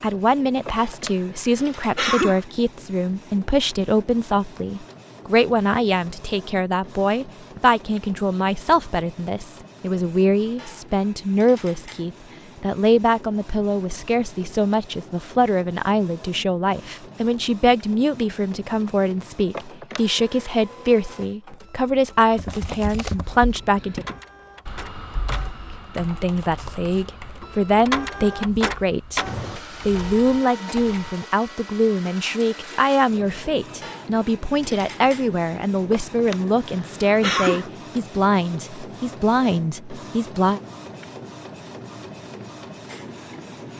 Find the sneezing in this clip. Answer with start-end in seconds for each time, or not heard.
0.7-2.4, 19.5-20.5, 35.9-37.6.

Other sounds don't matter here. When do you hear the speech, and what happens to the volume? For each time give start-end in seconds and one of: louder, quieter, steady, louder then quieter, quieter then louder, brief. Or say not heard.
0.0-24.1 steady
25.9-40.6 steady.